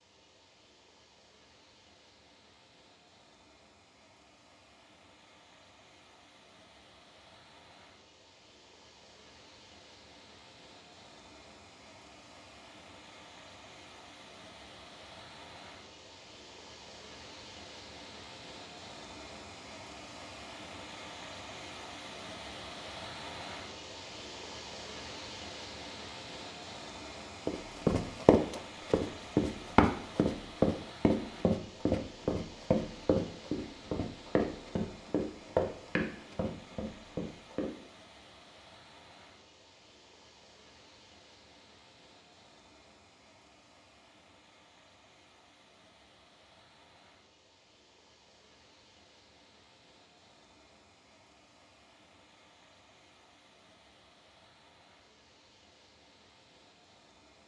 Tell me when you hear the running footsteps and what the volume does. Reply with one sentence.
You can hear the running footsteps from 27.4 to 37.7 s, getting quieter.